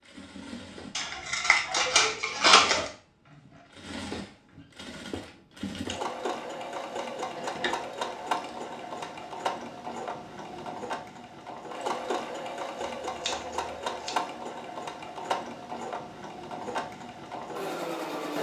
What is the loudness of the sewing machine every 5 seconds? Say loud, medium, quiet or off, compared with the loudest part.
medium, loud, loud, loud.